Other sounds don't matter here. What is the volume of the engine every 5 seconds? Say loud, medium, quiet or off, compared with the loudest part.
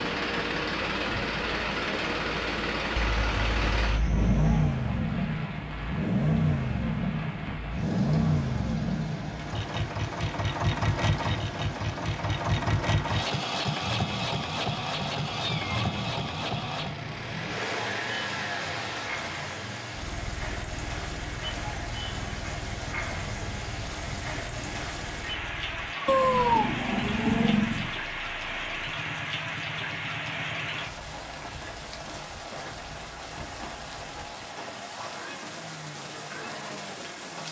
loud, loud, loud, medium, quiet, quiet, quiet, quiet.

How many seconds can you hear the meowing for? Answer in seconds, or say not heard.
4 s.